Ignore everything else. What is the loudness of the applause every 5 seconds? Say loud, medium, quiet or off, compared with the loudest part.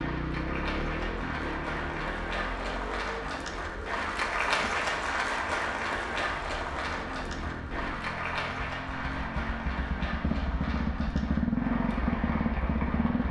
loud, loud, medium.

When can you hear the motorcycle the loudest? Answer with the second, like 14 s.
12 s.